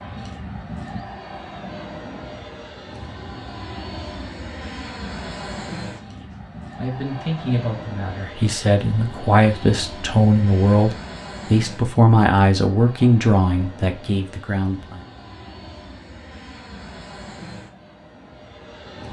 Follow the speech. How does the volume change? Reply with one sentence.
The loudness of the speech goes up.